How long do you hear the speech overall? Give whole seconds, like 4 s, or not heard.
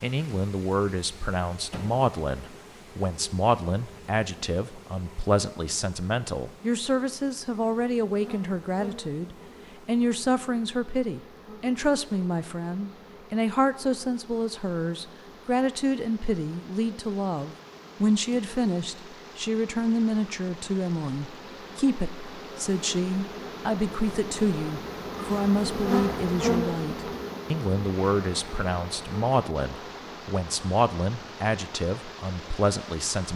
33 s.